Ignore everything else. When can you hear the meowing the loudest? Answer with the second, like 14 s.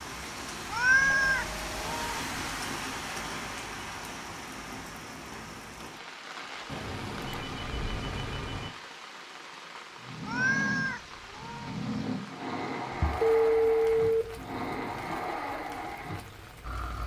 1 s.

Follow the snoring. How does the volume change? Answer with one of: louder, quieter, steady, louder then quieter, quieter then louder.
steady.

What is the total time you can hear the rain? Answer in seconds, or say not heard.
17 s.